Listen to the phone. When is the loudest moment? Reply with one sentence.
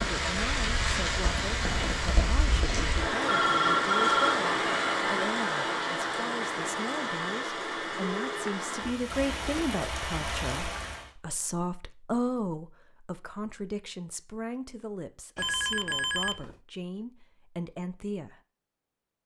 The loudest moment of the phone is at 4 seconds.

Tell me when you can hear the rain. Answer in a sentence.
The rain can be heard from 0.0 to 11.1 s.